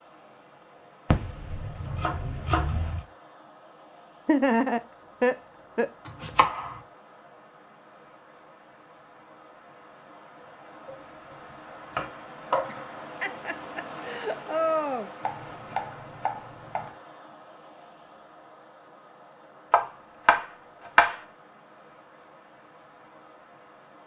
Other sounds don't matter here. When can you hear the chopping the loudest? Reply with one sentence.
The loudest moment of the chopping is at 21 seconds.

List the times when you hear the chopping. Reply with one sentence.
You can hear the chopping from 1.1 to 3.0 s, from 6.0 to 6.8 s, from 10.8 to 12.8 s, from 15.2 to 16.9 s and from 19.7 to 21.1 s.